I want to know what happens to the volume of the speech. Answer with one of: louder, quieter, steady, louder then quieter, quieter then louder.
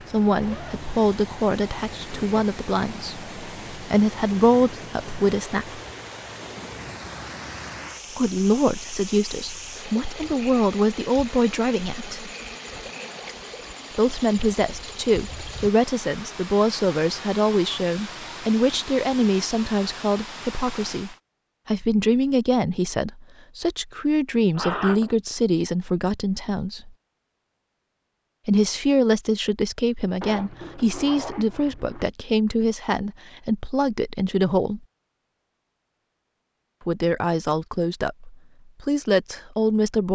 steady.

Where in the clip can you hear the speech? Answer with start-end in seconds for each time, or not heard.
0.1-5.8, 8.2-12.3, 13.9-26.9, 28.4-34.8, 36.9-40.0.